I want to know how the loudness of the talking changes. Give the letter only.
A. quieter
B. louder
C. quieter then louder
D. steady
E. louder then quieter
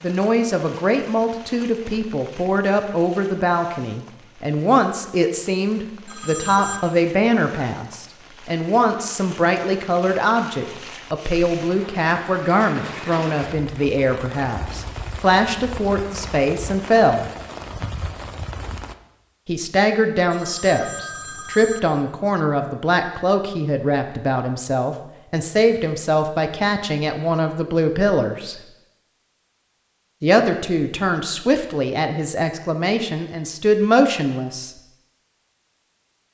D.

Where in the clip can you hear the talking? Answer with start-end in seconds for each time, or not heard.
0.0-17.2, 19.4-28.6, 30.2-34.7.